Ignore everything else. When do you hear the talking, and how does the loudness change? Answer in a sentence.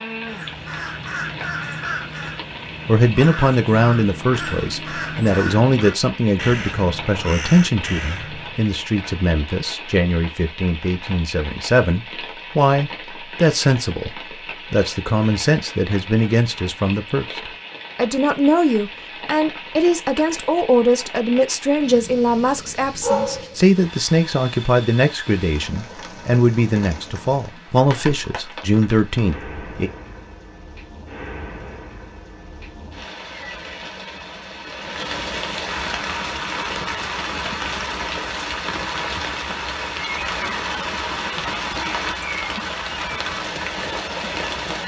The talking can be heard from 2.9 to 29.9 s, at a steady volume.